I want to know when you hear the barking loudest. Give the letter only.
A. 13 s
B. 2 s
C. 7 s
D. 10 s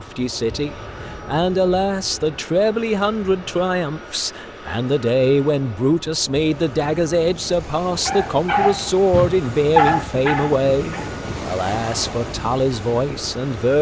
D.